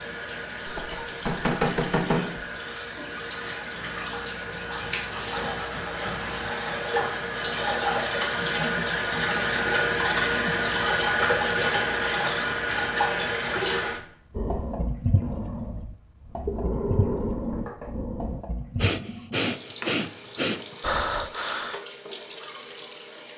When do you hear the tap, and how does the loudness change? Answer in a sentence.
The tap can be heard from 0.0 to 23.3 s, getting louder then quieter.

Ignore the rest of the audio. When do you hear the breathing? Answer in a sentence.
You can hear the breathing from 14.3 to 21.8 s.